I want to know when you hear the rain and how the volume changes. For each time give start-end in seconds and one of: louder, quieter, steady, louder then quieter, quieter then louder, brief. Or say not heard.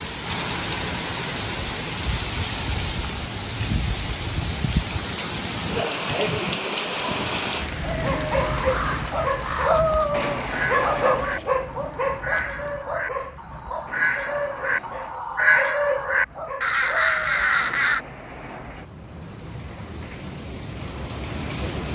0.0-21.9 quieter then louder.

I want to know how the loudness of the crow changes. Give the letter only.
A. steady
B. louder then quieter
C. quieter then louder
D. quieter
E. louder
E.